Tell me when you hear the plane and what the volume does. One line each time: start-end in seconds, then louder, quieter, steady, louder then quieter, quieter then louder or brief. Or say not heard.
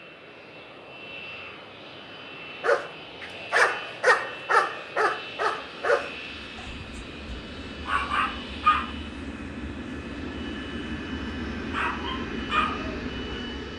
0.0-13.7 louder.